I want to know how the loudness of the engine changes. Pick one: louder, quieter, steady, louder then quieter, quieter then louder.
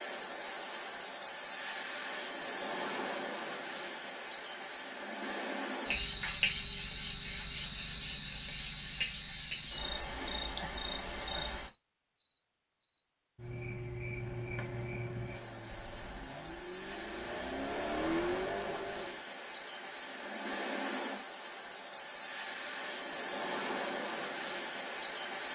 louder.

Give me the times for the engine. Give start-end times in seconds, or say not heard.
14.1-19.2.